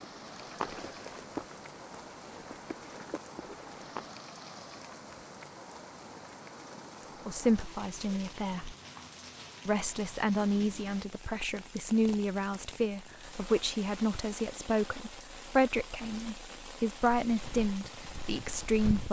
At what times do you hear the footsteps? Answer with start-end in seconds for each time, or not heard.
0.1-4.1, 17.2-19.0.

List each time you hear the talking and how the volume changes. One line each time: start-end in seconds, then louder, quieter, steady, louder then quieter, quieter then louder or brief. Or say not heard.
7.2-8.8 brief
9.7-19.0 steady.